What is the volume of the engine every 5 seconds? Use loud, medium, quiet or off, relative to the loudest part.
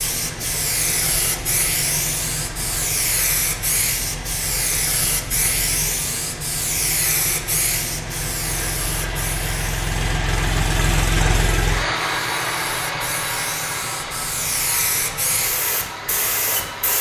medium, medium, loud, medium.